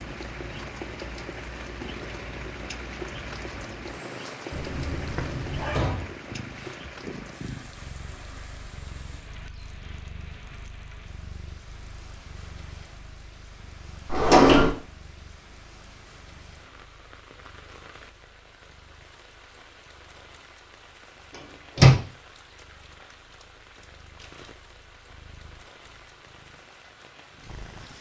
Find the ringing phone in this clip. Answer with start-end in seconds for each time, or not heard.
4.5-5.9.